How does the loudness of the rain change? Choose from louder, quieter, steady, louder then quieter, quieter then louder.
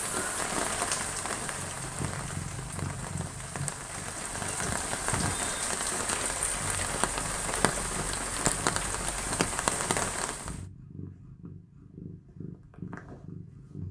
quieter then louder.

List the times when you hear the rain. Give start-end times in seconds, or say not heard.
0.0-10.6.